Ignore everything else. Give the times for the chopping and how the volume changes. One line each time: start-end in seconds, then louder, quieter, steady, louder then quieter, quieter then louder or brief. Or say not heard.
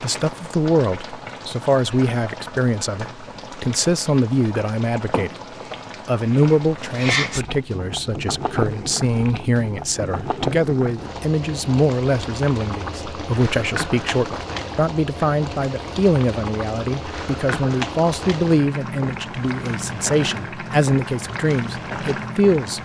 not heard.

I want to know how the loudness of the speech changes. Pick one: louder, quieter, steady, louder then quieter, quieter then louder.
steady.